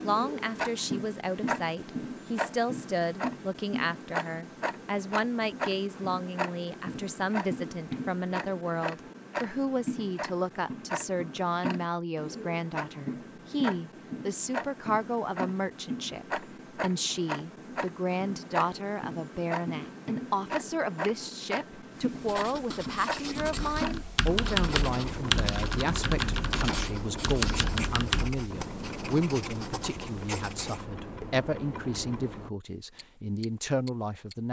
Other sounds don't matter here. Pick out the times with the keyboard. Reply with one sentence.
You can hear the keyboard from 23.2 to 28.4 s.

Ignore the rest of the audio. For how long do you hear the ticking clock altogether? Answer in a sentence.
You can hear the ticking clock for 34 seconds altogether.